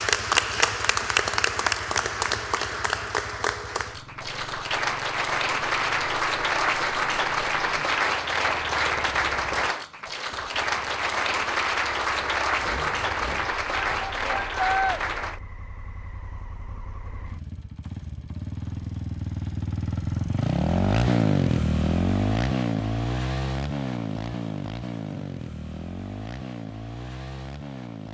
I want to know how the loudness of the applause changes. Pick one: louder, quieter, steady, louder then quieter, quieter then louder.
steady.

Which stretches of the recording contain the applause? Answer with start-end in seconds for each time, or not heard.
0.0-15.4.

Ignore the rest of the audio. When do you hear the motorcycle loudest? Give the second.
21 s.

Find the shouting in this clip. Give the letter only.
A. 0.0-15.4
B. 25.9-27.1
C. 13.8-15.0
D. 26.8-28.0
C.